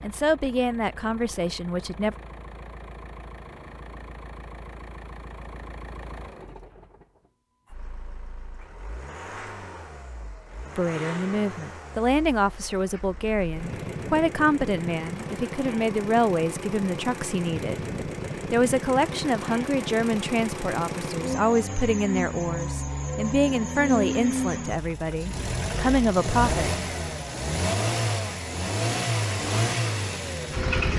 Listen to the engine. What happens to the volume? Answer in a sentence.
The volume of the engine goes up.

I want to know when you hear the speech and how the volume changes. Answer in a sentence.
The speech can be heard briefly from 0.0 to 2.1 s; from 10.8 to 17.9 s, at a steady volume; and from 18.5 to 26.8 s, at a steady volume.